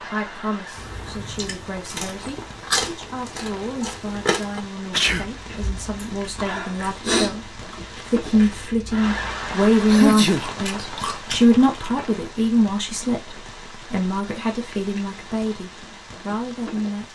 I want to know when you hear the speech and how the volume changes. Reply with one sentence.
You can hear the speech from 0.0 to 17.1 s, getting louder then quieter.